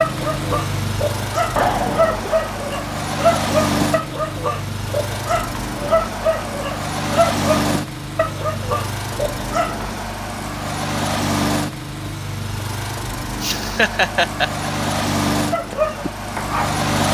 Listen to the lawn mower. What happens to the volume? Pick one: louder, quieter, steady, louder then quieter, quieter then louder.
steady.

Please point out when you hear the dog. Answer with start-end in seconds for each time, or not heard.
0.0-9.9, 15.5-16.8.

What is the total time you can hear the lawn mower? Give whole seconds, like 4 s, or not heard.
17 s.